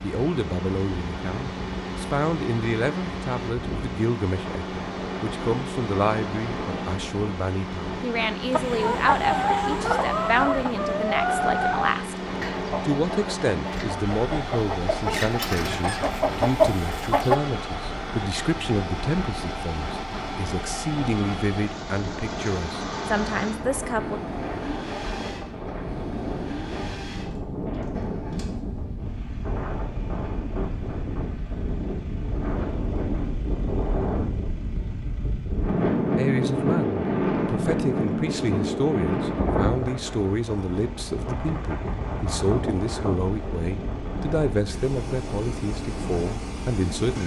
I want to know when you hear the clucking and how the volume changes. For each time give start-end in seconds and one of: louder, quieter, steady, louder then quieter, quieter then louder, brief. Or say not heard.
8.5-17.4 quieter then louder.